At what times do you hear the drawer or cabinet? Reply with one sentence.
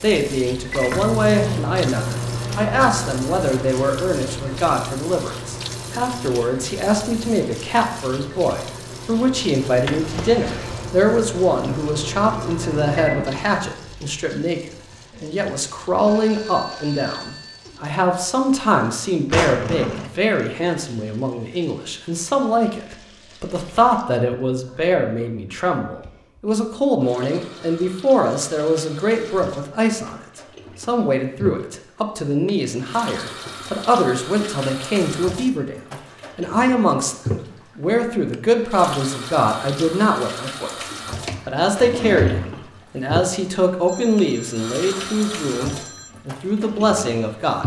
The drawer or cabinet can be heard from 9.8 to 10.9 s, from 19.3 to 20.1 s and from 41.2 to 42.7 s.